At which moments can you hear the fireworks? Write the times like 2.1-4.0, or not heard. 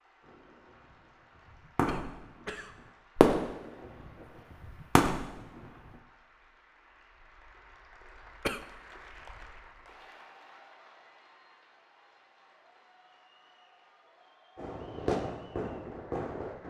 0.2-5.7, 14.6-16.6.